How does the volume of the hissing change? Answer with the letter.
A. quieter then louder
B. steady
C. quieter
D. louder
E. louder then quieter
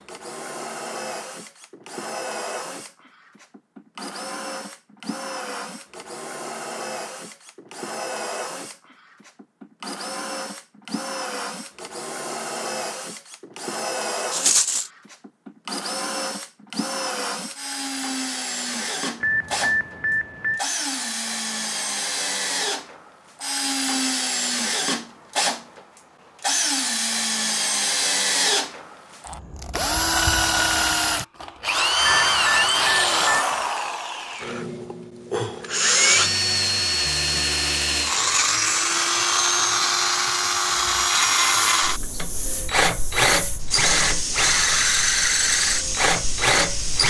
D.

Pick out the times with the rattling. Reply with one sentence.
The rattling can be heard from 14.3 to 14.9 s.